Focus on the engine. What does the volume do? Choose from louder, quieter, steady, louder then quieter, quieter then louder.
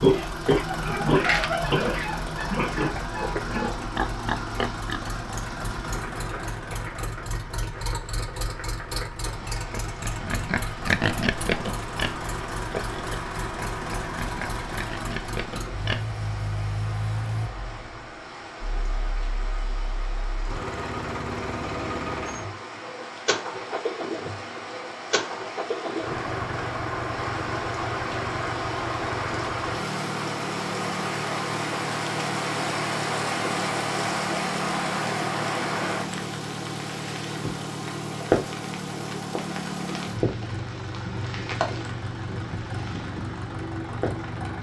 steady.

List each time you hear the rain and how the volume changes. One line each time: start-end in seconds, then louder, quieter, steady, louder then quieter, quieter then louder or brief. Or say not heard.
0.0-44.5 louder.